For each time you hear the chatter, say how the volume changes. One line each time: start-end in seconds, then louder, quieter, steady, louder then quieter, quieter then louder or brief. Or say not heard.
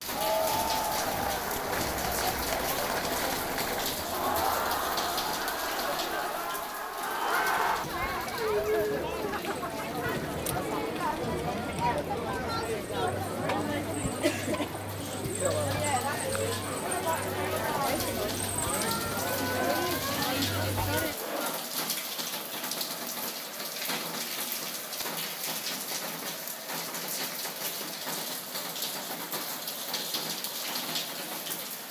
0.0-31.8 quieter.